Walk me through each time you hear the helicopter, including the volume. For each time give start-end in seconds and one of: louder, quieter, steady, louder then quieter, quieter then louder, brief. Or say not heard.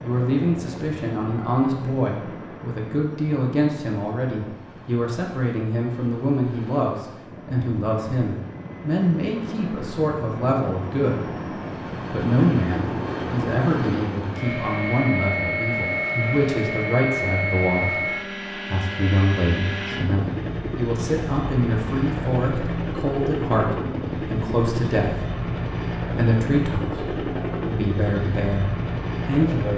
0.0-29.7 louder.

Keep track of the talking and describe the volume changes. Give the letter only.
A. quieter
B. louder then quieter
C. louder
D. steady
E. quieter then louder
D.